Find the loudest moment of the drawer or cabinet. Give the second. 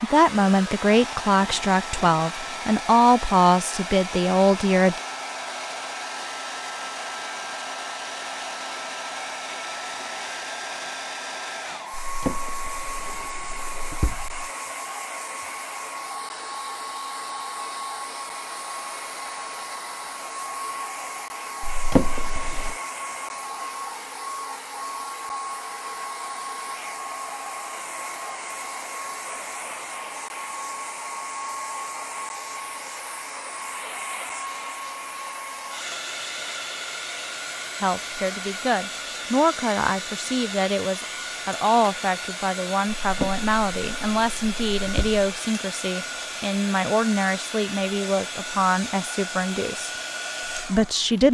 22 s.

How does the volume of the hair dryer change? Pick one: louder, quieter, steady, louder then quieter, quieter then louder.
steady.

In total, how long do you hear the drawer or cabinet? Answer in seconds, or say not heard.
6 s.